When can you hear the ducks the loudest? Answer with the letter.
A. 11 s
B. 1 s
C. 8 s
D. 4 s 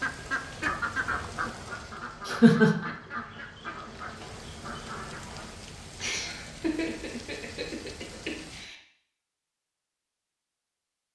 B.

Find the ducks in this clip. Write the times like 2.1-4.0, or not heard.
0.0-5.5.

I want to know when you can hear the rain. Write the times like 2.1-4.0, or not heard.
0.0-8.7.